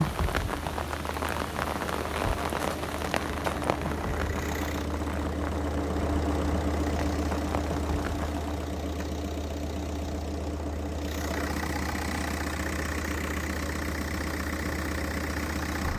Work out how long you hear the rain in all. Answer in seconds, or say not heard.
9 s.